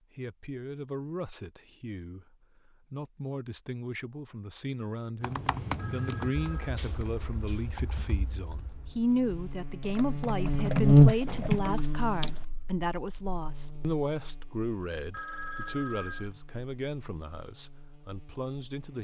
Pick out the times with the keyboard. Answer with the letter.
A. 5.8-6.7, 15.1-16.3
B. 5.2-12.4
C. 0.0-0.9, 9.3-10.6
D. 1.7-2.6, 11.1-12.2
B.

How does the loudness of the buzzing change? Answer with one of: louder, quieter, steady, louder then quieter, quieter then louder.
louder then quieter.